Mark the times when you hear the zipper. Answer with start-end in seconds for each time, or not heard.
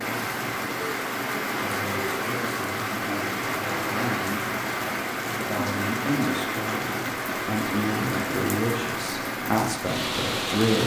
not heard.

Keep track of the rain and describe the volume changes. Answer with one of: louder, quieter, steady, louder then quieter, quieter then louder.
steady.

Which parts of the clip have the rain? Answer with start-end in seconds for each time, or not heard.
0.0-10.8.